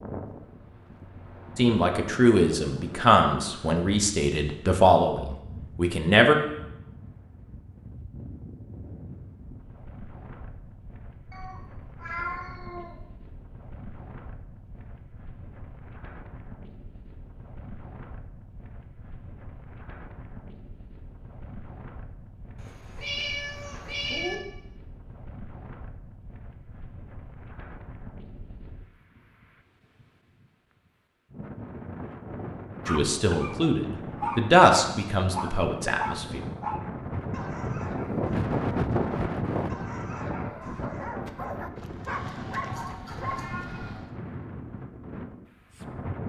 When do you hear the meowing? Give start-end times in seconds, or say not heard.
11.3-12.9, 22.6-24.4, 42.6-44.0.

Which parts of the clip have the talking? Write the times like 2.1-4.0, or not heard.
1.6-6.3, 32.9-36.4.